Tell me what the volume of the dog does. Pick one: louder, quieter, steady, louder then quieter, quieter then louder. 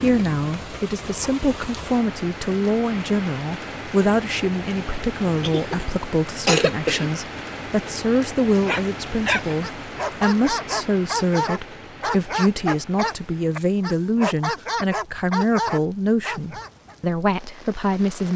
steady.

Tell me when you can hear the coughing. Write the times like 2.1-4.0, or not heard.
5.4-7.1.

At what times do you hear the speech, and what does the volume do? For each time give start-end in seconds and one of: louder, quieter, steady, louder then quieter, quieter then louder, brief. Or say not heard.
0.0-18.3 steady.